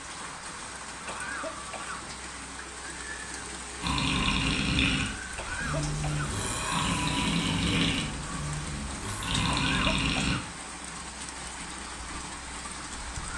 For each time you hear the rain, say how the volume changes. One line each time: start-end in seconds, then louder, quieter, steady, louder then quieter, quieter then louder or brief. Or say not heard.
0.0-13.3 steady.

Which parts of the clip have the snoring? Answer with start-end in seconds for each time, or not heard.
3.8-10.3.